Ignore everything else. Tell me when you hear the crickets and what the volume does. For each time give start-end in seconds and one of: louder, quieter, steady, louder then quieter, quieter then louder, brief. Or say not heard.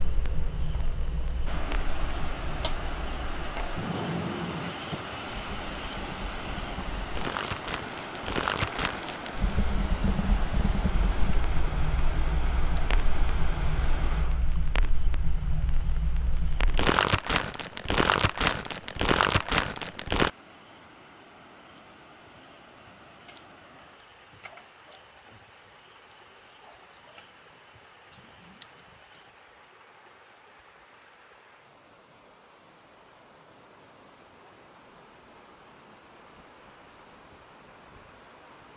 0.0-29.4 quieter.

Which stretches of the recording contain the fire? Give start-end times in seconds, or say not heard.
0.0-20.3.